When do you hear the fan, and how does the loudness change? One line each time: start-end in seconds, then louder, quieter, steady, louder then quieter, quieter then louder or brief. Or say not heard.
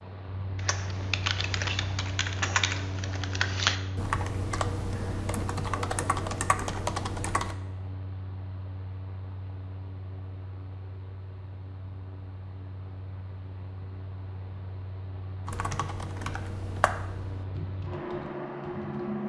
0.0-19.2 quieter then louder.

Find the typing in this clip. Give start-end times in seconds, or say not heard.
0.6-7.5, 15.4-19.2.